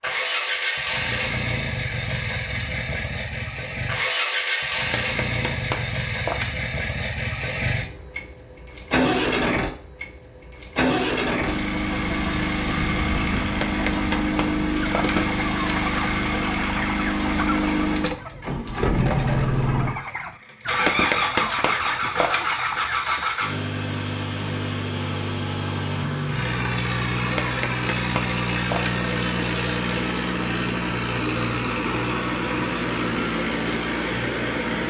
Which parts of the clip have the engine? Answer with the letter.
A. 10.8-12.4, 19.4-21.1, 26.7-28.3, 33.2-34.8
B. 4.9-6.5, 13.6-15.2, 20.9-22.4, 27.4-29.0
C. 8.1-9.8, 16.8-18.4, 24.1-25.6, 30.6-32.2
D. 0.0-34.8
D.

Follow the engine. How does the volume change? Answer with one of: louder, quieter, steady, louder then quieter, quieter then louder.
steady.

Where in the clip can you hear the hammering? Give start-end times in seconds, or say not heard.
4.9-6.5, 13.6-15.2, 20.9-22.4, 27.4-29.0.